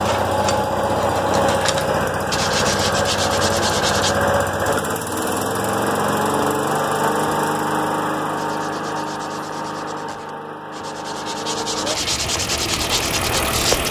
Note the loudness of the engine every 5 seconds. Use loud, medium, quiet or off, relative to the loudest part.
loud, loud, medium.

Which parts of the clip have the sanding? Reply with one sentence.
You can hear the sanding from 0.0 to 4.2 s and from 8.3 to 13.8 s.